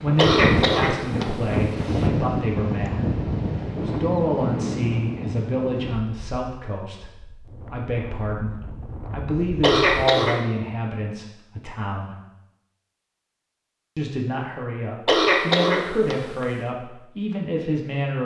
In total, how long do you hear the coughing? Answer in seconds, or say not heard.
4 s.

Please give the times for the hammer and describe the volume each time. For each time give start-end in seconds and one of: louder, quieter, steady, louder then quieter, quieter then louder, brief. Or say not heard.
not heard.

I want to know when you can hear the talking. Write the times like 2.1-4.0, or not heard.
0.0-3.1, 3.8-12.2, 13.9-18.2.